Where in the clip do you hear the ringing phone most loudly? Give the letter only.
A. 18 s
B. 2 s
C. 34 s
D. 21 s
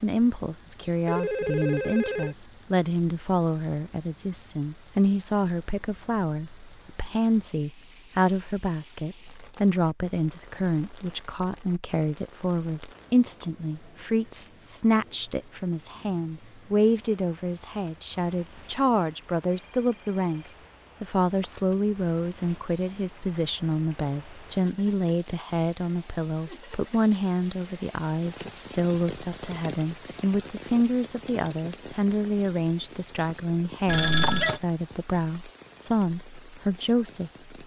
C.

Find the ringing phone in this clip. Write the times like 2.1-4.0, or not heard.
1.1-2.4, 19.7-20.5, 33.9-34.6.